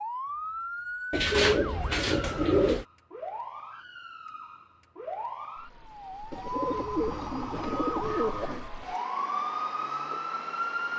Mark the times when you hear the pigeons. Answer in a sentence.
The pigeons can be heard from 1.1 to 2.9 s and from 6.3 to 8.7 s.